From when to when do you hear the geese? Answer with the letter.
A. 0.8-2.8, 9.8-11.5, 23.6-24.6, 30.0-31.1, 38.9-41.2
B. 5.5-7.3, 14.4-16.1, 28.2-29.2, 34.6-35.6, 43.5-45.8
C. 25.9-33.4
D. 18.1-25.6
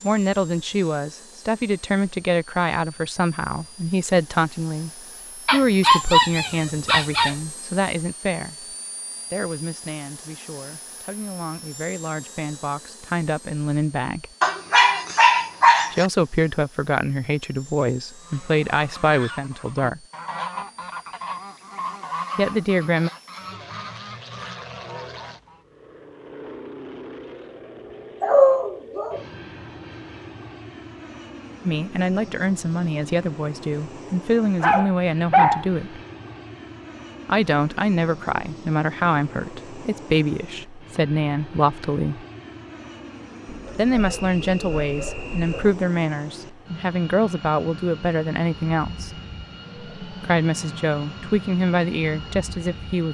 D.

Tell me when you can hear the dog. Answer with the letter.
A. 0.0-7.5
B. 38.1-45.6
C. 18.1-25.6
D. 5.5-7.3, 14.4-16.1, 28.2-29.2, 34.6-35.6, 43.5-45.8
D.